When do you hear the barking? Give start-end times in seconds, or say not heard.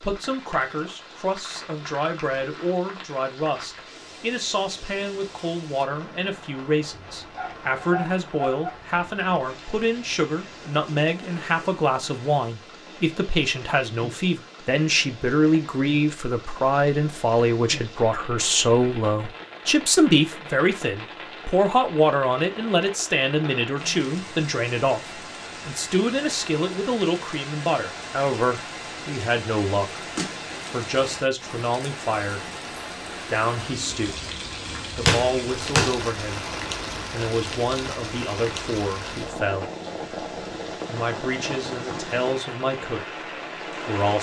7.3-8.7.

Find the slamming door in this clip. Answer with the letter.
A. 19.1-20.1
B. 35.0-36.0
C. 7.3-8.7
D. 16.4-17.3
B.